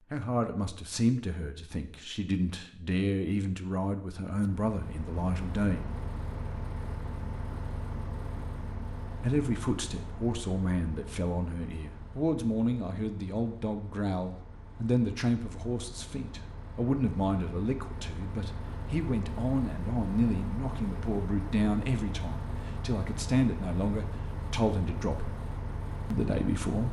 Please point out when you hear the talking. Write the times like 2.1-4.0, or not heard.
0.1-5.8, 9.1-25.4, 26.1-26.8.